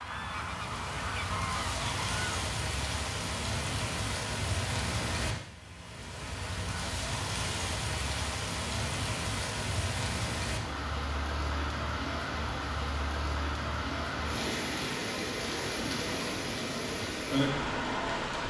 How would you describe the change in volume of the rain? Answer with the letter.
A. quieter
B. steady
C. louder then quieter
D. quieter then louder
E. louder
B.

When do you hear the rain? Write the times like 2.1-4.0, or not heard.
0.0-18.4.